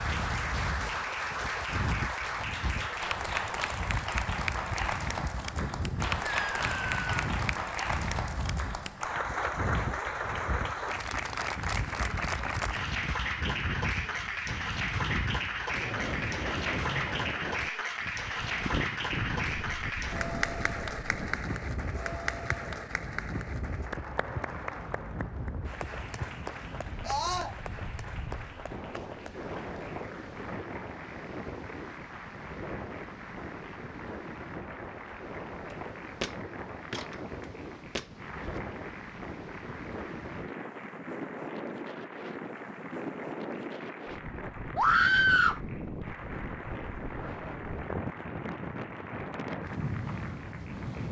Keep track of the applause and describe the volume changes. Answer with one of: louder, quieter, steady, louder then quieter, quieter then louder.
quieter.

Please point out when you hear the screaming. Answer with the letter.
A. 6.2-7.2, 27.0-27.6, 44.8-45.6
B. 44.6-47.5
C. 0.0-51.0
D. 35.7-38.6
A.